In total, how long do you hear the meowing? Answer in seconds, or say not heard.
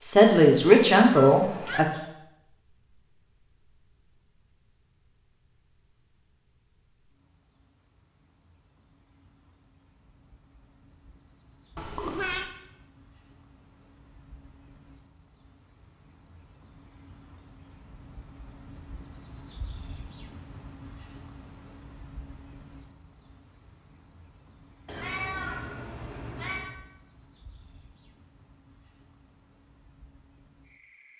3 s.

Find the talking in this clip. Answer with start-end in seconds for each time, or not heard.
0.0-1.9.